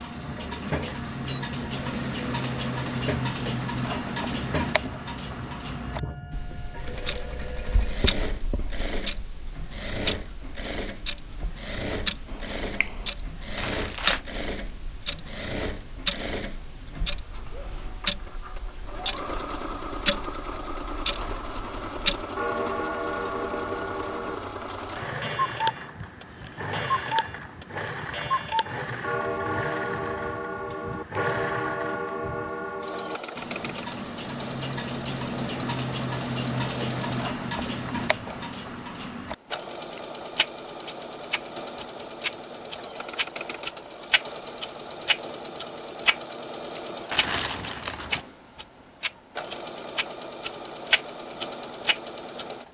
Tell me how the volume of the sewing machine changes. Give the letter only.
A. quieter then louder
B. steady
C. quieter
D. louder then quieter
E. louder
B.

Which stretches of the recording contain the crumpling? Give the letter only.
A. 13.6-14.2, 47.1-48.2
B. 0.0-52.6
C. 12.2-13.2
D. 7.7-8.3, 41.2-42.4
A.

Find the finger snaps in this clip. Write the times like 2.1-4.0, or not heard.
12.2-13.2.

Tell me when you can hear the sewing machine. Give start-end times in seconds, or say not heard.
0.0-52.6.